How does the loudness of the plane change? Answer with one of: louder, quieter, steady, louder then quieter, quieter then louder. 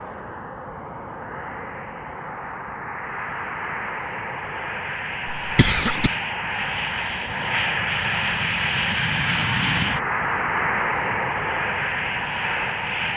louder.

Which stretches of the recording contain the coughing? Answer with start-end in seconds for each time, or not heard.
5.2-6.2.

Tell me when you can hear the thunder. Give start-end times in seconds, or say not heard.
not heard.